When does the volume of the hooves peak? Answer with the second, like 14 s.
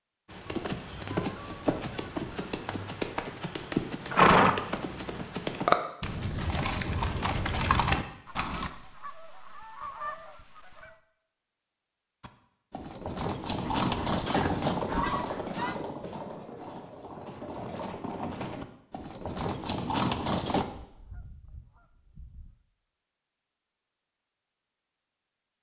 4 s.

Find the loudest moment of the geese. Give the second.
15 s.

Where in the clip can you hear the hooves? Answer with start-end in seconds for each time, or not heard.
0.3-8.7, 12.2-20.6.